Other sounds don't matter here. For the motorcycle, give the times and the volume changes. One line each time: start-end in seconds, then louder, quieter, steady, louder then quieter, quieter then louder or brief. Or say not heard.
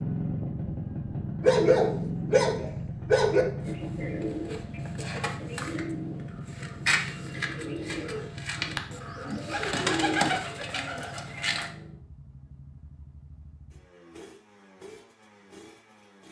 0.0-16.2 quieter.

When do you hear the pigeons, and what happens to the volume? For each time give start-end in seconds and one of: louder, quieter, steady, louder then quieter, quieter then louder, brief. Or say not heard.
3.5-11.7 louder.